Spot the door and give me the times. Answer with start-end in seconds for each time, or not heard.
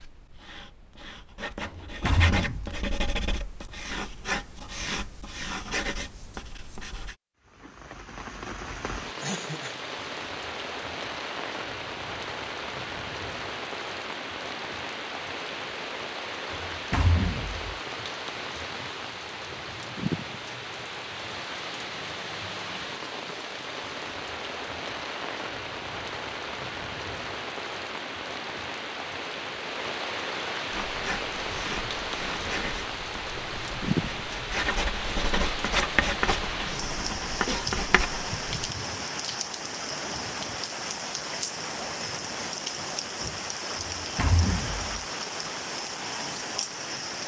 1.6-2.8, 16.5-17.6, 43.8-44.9.